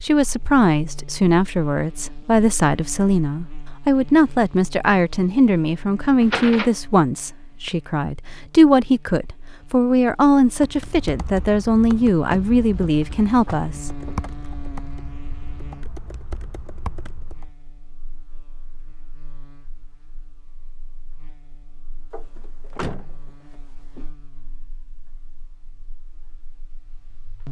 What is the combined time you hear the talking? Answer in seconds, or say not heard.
14 s.